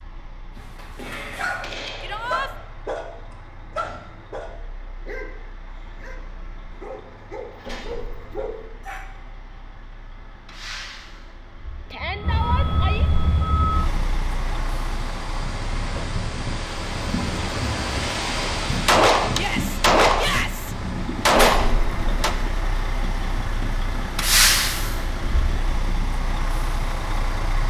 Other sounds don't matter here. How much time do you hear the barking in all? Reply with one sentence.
You can hear the barking for 7 seconds altogether.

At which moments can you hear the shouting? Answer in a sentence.
The shouting can be heard from 2.0 to 2.5 s, from 11.9 to 13.1 s and from 19.3 to 20.8 s.